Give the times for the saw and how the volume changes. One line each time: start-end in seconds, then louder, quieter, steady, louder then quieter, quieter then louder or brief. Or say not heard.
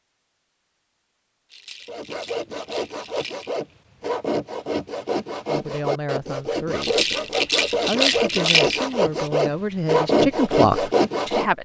1.9-11.5 louder.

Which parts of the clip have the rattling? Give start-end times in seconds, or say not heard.
1.5-3.6, 6.8-9.1.